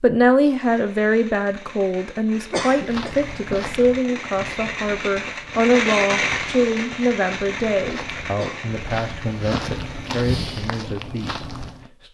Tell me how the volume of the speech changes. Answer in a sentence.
The loudness of the speech goes down.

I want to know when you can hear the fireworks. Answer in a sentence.
You can hear the fireworks from 0.5 to 10.2 s.